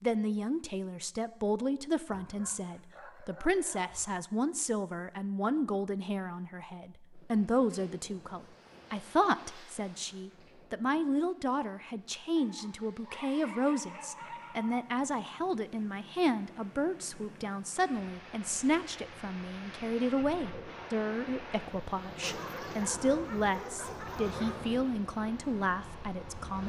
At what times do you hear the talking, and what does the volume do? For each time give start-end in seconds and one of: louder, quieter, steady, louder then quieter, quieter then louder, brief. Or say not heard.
0.0-26.6 steady.